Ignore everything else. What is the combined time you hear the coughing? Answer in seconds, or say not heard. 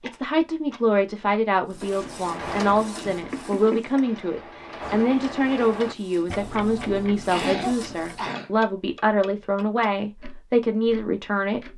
2 s.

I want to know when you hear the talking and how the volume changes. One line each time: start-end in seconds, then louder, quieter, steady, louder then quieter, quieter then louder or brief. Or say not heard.
0.0-11.7 steady.